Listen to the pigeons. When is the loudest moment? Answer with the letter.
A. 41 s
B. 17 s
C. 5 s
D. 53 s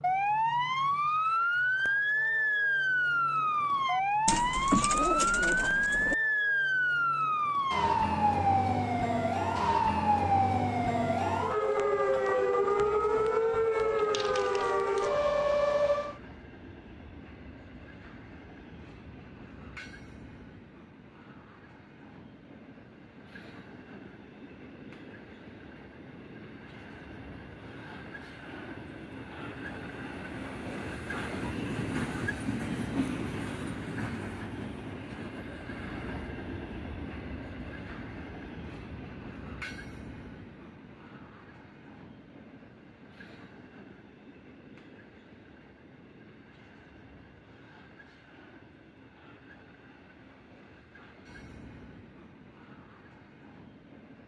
C.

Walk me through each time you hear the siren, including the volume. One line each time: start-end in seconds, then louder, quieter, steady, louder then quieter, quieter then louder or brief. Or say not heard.
0.0-16.2 steady.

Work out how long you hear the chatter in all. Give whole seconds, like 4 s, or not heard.
not heard.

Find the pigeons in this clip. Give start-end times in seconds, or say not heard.
4.2-6.2.